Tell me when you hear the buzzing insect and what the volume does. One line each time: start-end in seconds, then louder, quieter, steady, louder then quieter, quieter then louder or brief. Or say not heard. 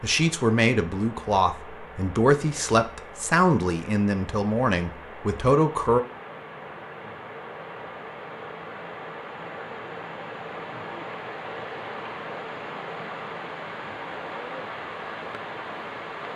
not heard.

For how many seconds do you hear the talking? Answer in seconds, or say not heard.
6 s.